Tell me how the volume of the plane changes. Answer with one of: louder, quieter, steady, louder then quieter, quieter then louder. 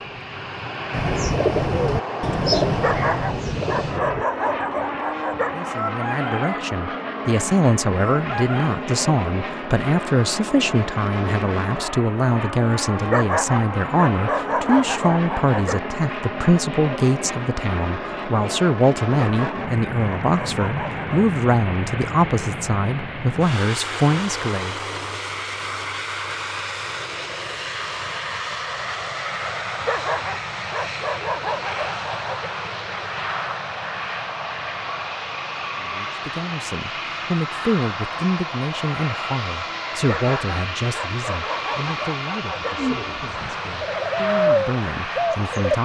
steady.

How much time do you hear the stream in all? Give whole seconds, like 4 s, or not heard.
not heard.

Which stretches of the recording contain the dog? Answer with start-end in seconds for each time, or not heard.
2.8-5.7, 13.1-15.8, 19.1-21.2, 29.8-32.5, 40.0-43.0.